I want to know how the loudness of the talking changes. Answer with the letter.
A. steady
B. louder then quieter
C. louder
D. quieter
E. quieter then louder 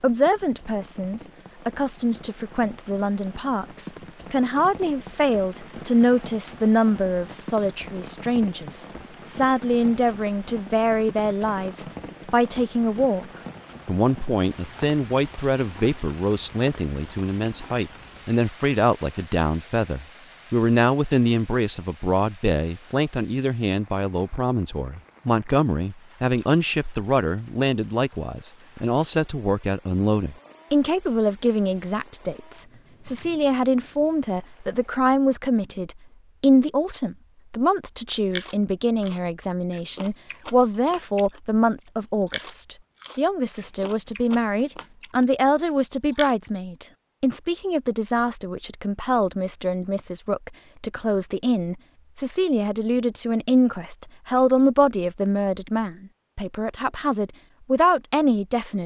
A.